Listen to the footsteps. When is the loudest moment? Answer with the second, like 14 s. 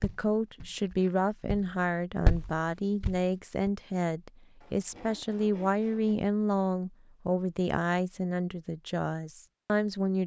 2 s.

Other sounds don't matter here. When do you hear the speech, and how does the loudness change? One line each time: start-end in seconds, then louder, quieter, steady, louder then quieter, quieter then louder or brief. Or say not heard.
0.0-10.2 steady.